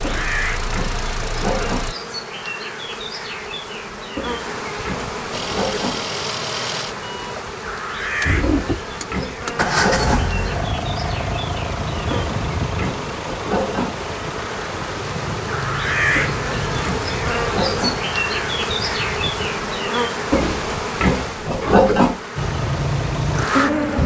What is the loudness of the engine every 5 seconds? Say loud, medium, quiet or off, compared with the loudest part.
medium, loud, loud, medium, loud.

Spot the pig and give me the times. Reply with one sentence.
The pig can be heard from 0.0 to 1.9 s, from 4.2 to 6.1 s, from 8.4 to 10.3 s, from 12.1 to 14.0 s, from 16.1 to 18.1 s and from 20.3 to 22.2 s.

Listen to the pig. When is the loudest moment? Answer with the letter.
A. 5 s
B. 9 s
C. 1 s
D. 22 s
D.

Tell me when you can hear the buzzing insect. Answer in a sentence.
You can hear the buzzing insect from 0.0 to 24.0 s.